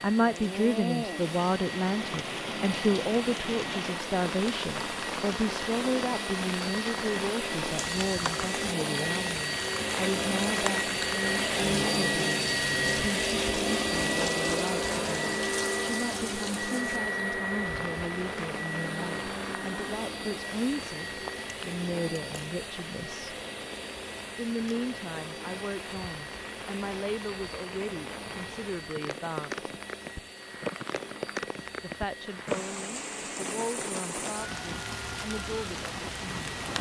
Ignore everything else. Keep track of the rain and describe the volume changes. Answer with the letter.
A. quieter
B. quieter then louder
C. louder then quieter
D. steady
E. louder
B.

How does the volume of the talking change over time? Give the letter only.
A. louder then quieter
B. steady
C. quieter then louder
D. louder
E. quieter
E.